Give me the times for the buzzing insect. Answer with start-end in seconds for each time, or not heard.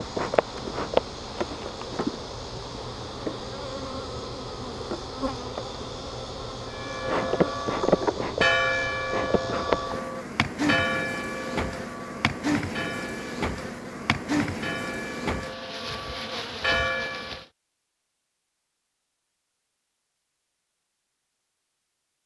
0.0-17.4.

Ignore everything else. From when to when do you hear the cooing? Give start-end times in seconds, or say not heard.
not heard.